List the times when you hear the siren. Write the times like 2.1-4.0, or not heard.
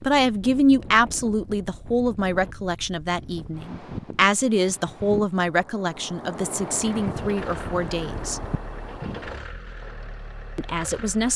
not heard.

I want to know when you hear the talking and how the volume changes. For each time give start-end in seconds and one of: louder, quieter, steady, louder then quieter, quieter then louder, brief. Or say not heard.
0.0-8.4 quieter
10.6-11.3 brief.